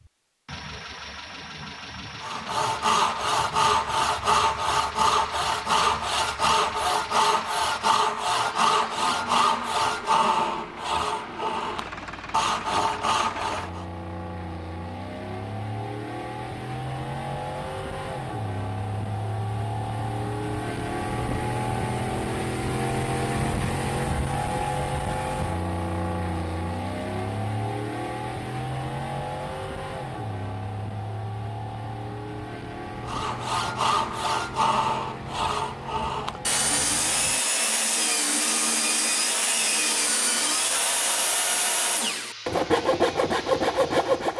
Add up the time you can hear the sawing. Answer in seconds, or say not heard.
23 s.